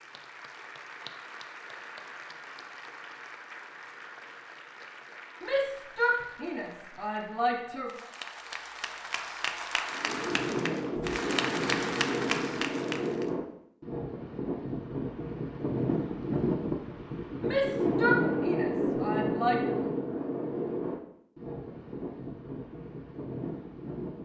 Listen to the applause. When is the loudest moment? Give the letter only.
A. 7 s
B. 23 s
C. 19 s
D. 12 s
D.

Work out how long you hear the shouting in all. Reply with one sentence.
You can hear the shouting for 5 seconds altogether.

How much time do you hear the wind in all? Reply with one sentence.
You can hear the wind for 14 seconds altogether.